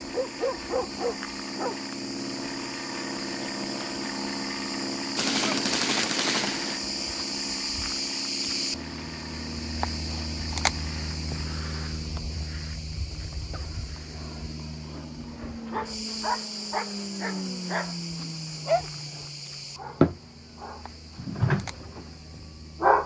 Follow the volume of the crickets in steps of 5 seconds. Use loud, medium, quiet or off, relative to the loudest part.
medium, loud, loud, medium, quiet.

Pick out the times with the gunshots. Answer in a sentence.
You can hear the gunshots from 5.2 to 6.8 s.